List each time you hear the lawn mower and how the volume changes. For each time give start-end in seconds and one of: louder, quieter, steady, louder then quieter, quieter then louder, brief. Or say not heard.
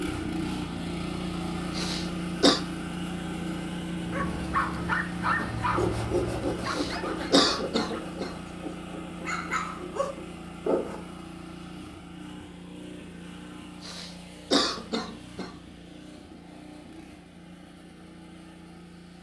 0.0-19.1 quieter.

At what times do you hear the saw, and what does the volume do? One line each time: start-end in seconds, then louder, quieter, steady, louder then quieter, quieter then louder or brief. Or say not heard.
5.3-11.0 quieter.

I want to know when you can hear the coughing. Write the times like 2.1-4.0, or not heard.
1.8-2.6, 6.7-8.3, 13.8-15.5.